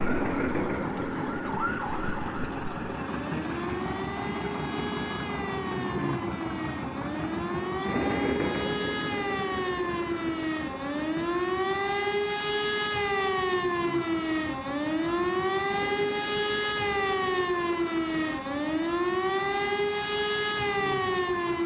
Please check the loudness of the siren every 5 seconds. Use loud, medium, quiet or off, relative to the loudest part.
medium, medium, loud, loud, loud.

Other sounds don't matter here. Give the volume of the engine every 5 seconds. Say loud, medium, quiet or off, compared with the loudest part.
loud, loud, medium, medium, medium.